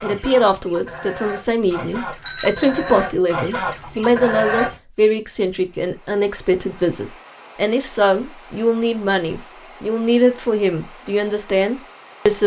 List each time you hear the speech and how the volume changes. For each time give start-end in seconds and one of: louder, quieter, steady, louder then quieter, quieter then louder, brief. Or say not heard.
0.0-12.4 steady.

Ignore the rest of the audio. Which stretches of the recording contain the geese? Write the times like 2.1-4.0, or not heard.
0.0-4.8.